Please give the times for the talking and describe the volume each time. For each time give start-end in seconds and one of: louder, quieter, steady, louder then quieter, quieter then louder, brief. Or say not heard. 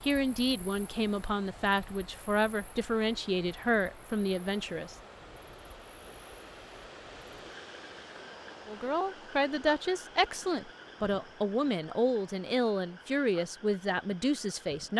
0.0-5.0 steady
8.7-14.9 steady.